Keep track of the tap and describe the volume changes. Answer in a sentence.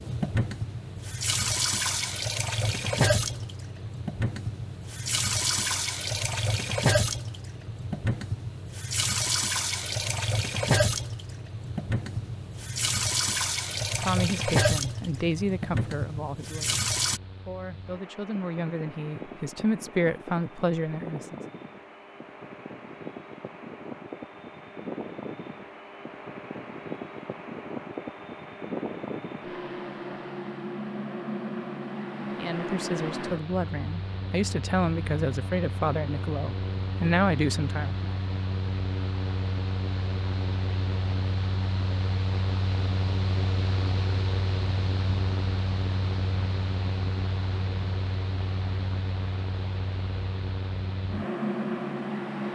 The loudness of the tap stays about the same.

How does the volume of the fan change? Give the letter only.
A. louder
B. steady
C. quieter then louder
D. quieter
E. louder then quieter
A.